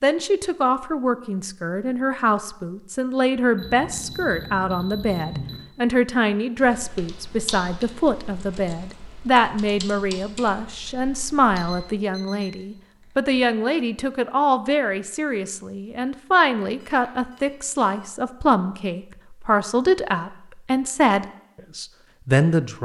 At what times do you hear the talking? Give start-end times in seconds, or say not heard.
0.0-22.7.